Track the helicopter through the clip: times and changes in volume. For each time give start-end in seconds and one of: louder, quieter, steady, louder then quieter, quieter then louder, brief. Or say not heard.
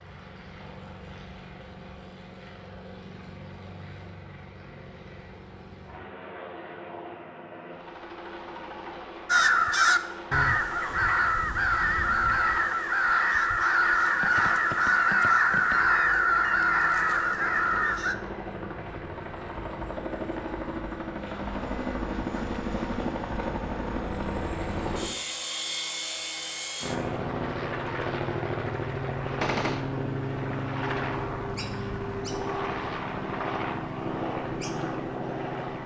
0.0-35.8 louder.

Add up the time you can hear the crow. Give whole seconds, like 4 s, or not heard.
9 s.